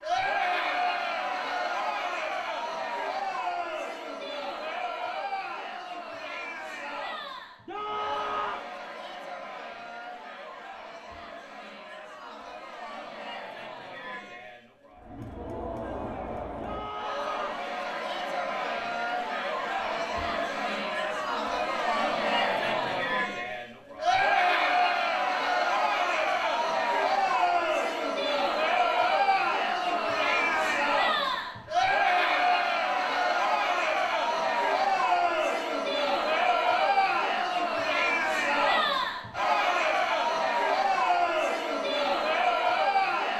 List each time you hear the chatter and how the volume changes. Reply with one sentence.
You can hear the chatter from 0.0 to 43.3 s, getting quieter then louder.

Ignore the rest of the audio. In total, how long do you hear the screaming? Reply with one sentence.
The screaming can be heard for 3 seconds in total.